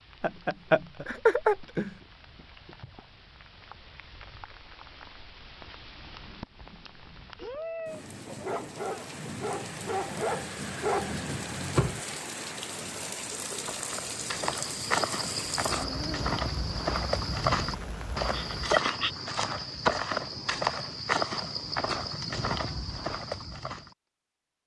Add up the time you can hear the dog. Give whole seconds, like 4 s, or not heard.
4 s.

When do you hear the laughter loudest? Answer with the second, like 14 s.
1 s.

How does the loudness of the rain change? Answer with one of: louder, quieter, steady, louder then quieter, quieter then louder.
louder.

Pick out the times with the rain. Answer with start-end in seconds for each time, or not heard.
0.0-18.8.